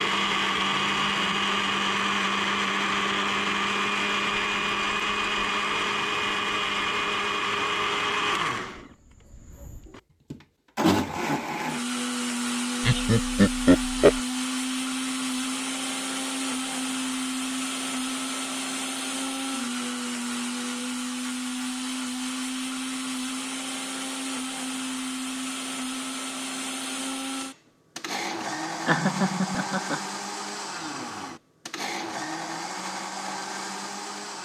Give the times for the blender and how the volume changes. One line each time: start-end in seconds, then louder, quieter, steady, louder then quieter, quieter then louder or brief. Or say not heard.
0.0-34.4 quieter.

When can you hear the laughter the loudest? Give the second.
14 s.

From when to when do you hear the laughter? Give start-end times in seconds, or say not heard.
12.8-14.2, 28.9-30.0.